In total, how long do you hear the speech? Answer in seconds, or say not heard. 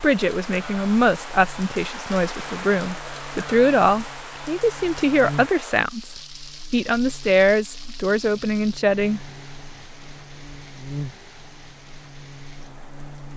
9 s.